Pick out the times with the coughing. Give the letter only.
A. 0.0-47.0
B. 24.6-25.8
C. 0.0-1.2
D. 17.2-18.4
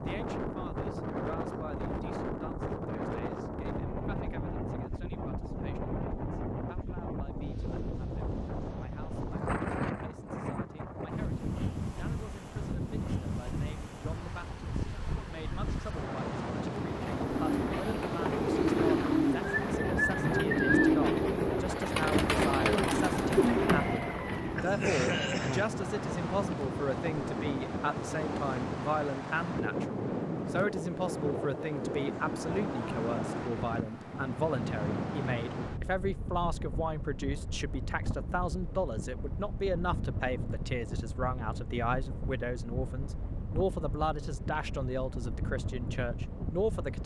B.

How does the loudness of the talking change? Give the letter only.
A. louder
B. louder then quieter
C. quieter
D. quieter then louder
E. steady
A.